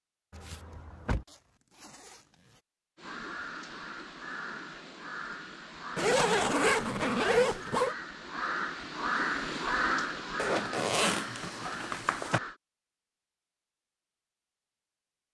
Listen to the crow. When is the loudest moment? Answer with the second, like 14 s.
10 s.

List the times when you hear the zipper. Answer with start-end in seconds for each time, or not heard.
0.3-2.2, 6.0-8.0, 10.3-12.4.